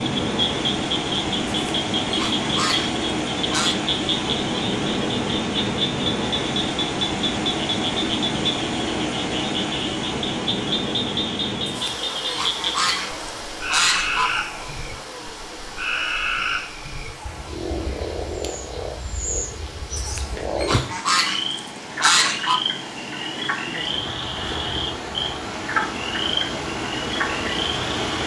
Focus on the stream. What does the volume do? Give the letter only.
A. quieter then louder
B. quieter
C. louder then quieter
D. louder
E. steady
A.